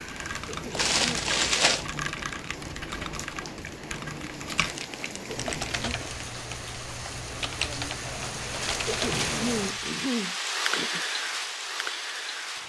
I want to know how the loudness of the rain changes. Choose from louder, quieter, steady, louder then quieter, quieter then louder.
louder.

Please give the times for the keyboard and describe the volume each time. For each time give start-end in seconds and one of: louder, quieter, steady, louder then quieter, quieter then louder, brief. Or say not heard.
0.0-9.9 steady.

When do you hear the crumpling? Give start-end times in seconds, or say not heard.
0.7-1.9, 4.5-6.6, 8.4-9.4.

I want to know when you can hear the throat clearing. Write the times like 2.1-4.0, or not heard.
0.5-1.2, 5.3-6.0, 8.8-11.1.